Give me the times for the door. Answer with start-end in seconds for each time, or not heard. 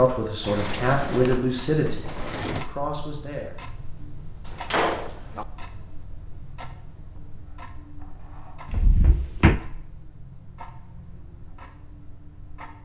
0.4-2.6, 4.5-5.5, 8.7-9.6.